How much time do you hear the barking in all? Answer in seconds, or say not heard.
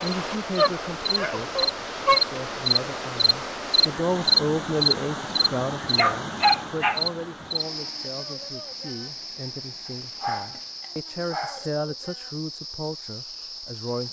4 s.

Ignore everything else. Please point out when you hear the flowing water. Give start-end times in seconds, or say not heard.
0.0-10.8.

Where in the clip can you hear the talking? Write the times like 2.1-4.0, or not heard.
0.0-14.0.